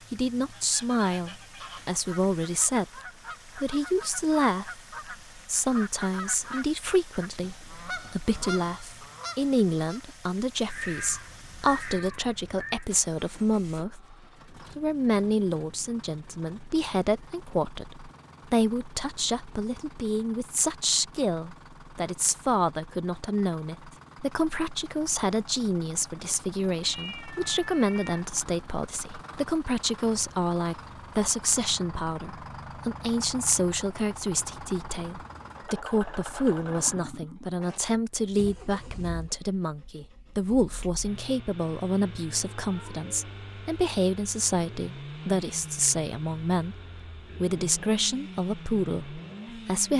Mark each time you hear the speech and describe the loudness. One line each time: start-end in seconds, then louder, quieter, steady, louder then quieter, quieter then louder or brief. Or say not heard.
0.1-46.8 steady
47.4-49.9 brief.